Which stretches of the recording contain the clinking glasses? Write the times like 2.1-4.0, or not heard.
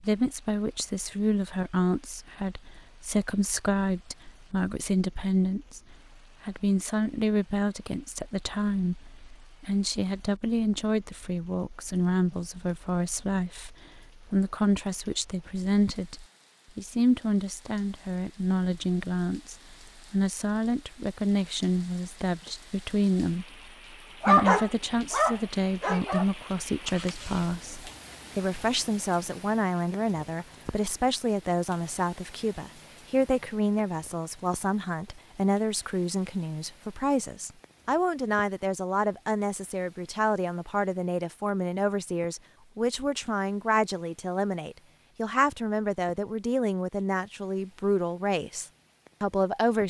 not heard.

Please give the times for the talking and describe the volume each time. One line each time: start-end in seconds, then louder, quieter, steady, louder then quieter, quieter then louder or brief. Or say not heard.
0.0-49.8 steady.